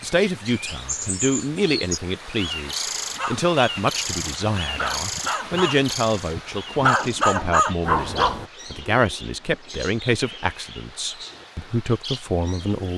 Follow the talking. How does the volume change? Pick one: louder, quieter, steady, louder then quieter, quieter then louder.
steady.